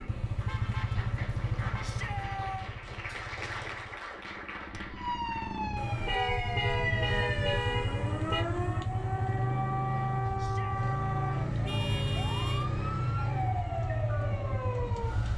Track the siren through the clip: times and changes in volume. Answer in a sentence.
The siren can be heard from 4.8 to 15.3 s, at a steady volume.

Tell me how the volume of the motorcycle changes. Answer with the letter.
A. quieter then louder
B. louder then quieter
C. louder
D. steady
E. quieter
A.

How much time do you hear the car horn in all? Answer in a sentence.
The car horn can be heard for 6 seconds in total.